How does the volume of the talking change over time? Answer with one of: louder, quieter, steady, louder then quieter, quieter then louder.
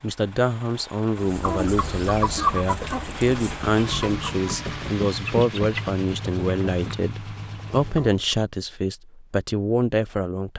steady.